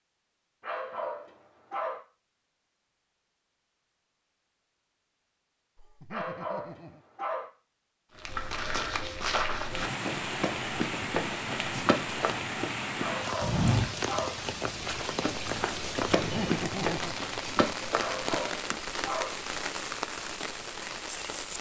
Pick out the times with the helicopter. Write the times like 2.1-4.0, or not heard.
not heard.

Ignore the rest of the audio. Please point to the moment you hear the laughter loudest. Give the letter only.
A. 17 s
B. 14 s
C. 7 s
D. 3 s
A.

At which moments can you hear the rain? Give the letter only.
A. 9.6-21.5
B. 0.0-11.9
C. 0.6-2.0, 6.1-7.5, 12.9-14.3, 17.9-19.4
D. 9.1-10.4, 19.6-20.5
A.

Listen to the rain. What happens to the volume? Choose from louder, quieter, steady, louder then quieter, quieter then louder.
steady.